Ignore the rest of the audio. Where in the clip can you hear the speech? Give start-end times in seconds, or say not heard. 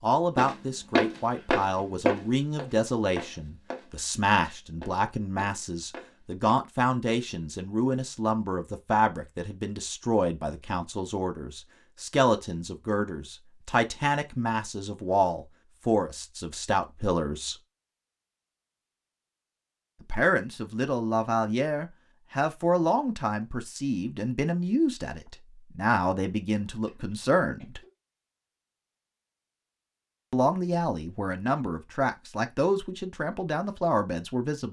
0.0-17.6, 20.1-27.8, 30.3-34.6.